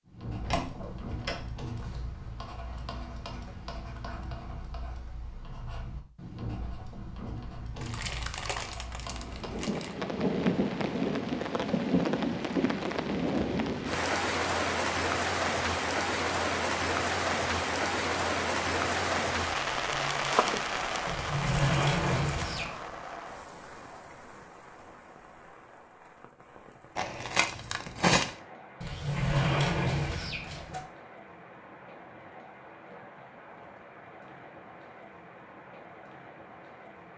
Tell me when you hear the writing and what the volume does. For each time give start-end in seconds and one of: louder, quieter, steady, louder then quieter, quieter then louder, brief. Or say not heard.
0.1-9.8 steady.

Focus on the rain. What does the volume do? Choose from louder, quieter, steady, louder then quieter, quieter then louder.
quieter.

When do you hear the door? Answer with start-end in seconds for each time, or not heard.
0.4-1.4, 21.1-22.8, 28.8-30.8.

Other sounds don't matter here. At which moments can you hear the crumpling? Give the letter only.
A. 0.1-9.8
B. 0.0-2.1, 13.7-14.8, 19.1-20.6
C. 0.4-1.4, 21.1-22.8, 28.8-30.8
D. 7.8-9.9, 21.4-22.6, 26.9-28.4
D.